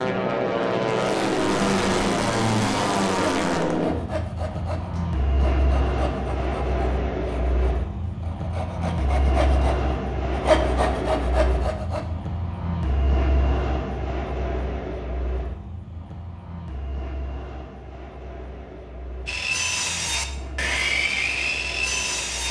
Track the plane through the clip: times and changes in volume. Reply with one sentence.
The plane can be heard from 0.0 to 22.4 s, getting quieter.